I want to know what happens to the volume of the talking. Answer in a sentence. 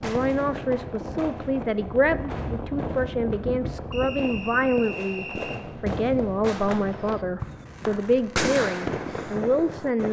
The volume of the talking stays about the same.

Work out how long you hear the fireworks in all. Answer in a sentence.
The fireworks can be heard for 10 seconds in total.